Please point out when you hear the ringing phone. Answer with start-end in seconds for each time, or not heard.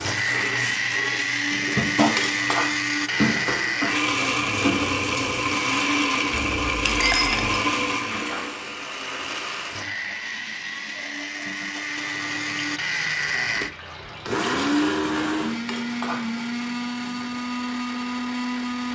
not heard.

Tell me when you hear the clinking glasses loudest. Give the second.
7 s.